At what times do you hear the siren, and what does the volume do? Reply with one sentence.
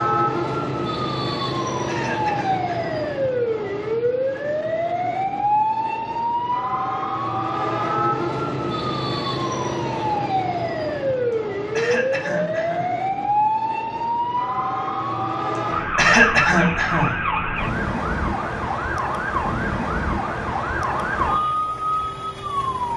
The siren can be heard from 0.0 to 22.9 s, at a steady volume.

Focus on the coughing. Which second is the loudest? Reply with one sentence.
The loudest moment of the coughing is at 16 seconds.